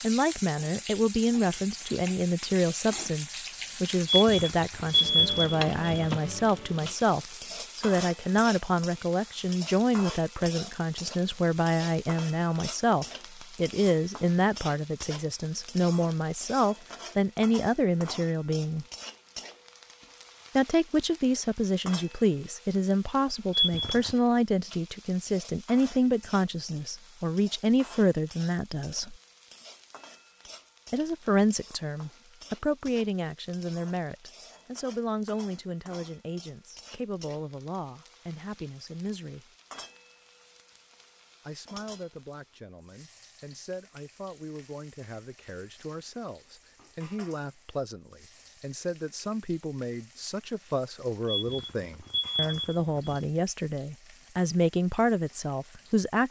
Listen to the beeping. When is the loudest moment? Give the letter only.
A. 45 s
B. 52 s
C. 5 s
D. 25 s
C.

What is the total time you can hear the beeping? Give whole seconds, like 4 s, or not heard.
5 s.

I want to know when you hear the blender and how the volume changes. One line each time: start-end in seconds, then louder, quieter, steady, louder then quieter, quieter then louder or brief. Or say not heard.
not heard.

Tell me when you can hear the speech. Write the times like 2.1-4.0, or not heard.
0.0-18.9, 20.6-29.1, 30.9-39.5, 41.5-56.2.